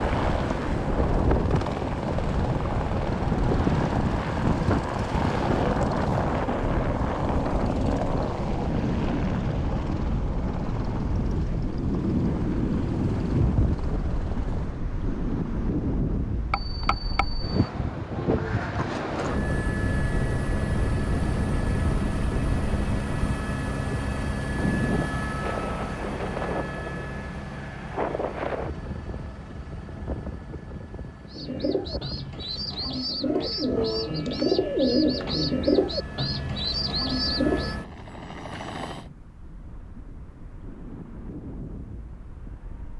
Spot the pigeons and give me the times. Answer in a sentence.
You can hear the pigeons from 31.3 to 37.8 s.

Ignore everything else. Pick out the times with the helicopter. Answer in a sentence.
You can hear the helicopter from 0.0 to 14.8 s and from 19.1 to 39.0 s.